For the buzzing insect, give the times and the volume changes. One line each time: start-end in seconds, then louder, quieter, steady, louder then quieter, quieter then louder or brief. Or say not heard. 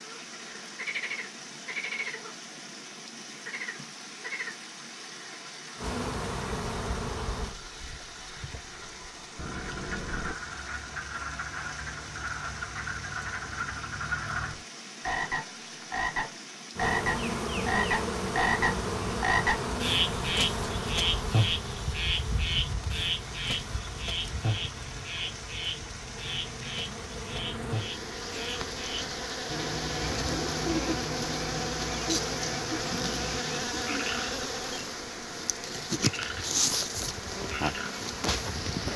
5.8-7.5 brief
16.8-38.9 quieter then louder.